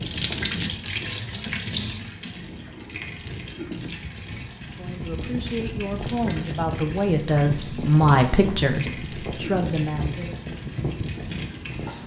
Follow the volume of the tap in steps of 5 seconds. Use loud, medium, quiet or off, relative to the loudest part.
loud, medium, medium.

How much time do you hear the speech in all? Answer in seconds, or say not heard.
6 s.